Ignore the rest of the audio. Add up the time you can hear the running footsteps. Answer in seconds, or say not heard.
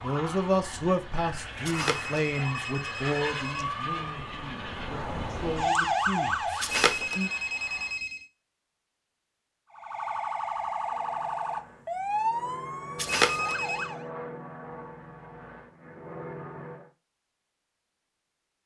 not heard.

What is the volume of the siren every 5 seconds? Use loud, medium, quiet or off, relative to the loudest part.
medium, loud, loud, off.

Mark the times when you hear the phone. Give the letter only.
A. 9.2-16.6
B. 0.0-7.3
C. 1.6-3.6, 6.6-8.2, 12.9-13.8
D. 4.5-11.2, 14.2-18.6
C.